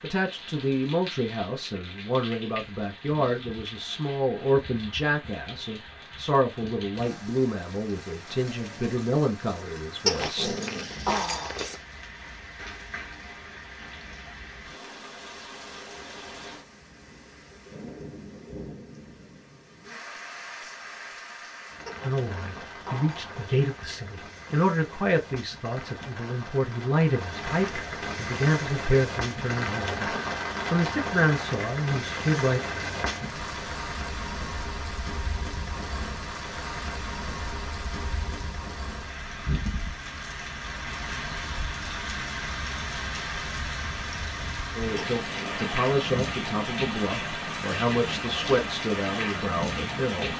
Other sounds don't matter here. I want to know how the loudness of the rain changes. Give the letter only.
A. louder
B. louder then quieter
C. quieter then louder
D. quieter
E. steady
A.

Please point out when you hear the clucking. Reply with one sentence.
The clucking can't be heard in this clip.